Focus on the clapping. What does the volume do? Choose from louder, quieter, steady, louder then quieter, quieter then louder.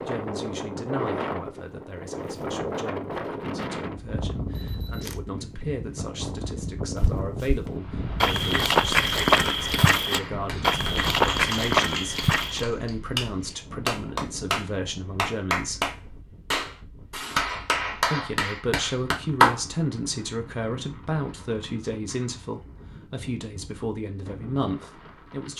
louder.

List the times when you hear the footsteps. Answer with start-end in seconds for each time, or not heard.
7.0-12.7.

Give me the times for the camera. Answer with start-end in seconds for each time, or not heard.
4.5-5.2.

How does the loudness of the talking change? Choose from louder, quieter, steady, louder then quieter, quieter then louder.
louder.